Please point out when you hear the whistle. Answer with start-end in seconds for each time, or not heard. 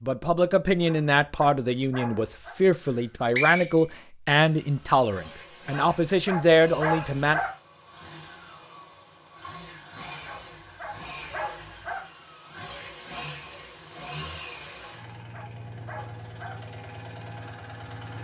2.8-4.0.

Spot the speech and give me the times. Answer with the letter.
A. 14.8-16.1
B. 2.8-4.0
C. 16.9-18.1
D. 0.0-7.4
D.